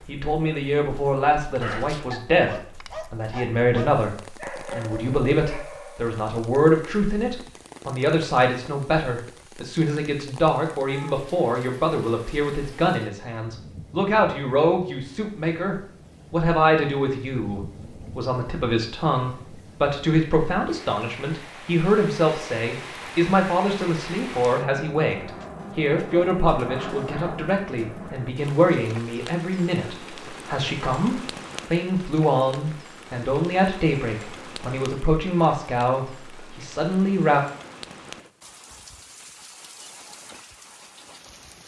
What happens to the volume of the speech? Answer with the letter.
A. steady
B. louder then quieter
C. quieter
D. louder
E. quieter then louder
A.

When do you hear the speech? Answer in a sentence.
The speech can be heard from 0.1 to 37.4 s.